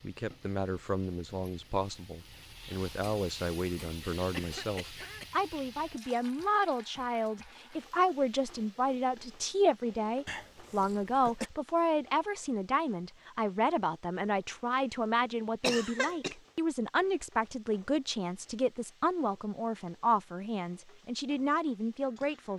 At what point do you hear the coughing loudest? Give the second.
16 s.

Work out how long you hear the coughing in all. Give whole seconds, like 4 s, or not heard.
3 s.